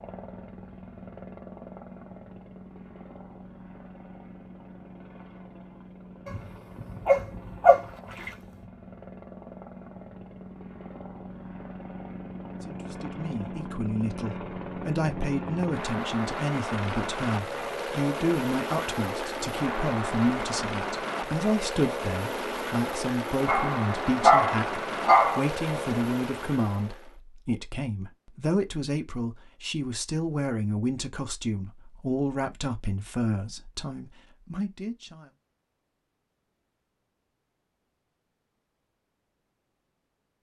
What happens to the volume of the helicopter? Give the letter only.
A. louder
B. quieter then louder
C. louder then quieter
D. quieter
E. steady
A.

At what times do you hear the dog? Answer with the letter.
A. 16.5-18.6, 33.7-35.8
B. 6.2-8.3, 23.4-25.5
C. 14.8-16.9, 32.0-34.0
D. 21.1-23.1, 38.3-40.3
B.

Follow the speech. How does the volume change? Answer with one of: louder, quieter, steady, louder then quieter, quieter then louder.
steady.